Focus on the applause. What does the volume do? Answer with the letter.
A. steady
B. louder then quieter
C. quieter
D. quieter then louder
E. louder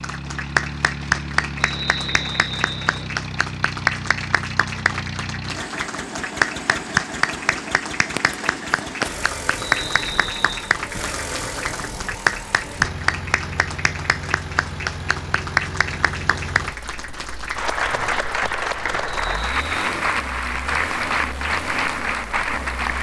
A.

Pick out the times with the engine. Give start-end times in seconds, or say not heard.
0.0-22.9.